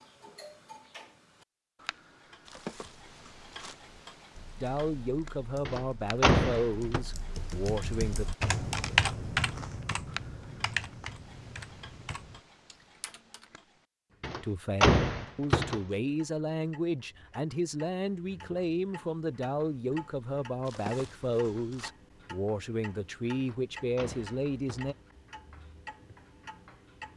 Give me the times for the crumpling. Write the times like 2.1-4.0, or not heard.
2.5-3.8, 20.6-21.9.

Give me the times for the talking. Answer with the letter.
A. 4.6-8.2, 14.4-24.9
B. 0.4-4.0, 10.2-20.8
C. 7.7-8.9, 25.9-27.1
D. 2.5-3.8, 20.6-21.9
A.